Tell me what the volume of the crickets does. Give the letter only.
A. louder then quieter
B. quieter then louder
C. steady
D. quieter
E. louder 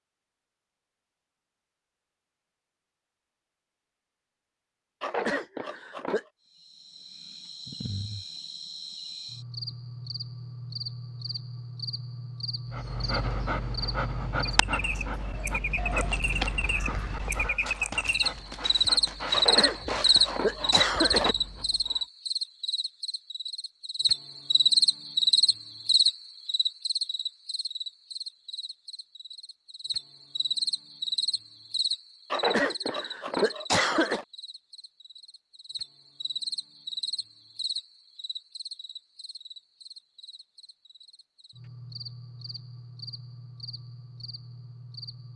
A.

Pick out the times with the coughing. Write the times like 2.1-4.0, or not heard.
5.0-6.2, 19.3-21.4, 32.3-34.2.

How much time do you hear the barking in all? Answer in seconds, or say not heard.
9 s.